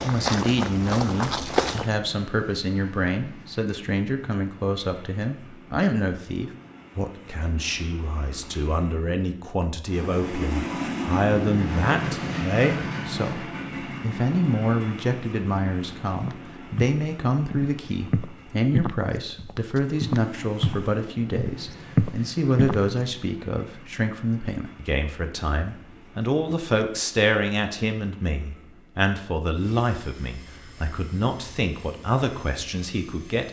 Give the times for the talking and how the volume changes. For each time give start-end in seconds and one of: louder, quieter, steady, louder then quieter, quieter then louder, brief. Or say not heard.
0.0-33.4 steady.